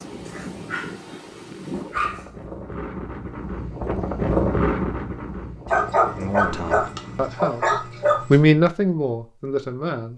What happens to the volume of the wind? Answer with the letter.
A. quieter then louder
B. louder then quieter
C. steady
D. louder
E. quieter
B.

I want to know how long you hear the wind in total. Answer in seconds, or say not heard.
7 s.